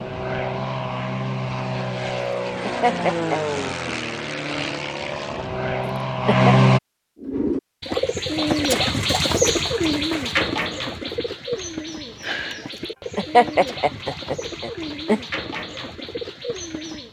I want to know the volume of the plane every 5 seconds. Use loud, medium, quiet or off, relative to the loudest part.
medium, loud, off, off.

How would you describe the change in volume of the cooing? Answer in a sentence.
The volume of the cooing goes down.